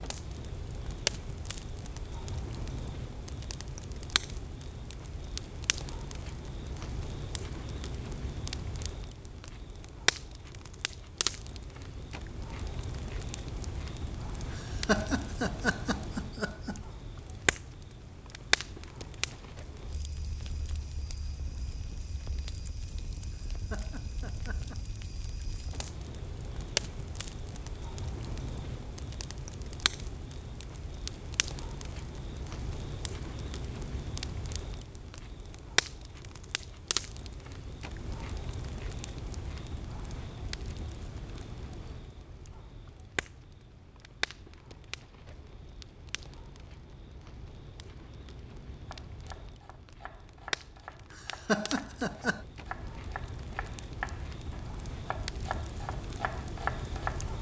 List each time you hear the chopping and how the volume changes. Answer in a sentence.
You can hear the chopping from 48.9 to 57.3 s, getting louder.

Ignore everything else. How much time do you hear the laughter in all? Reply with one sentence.
You can hear the laughter for 5 seconds altogether.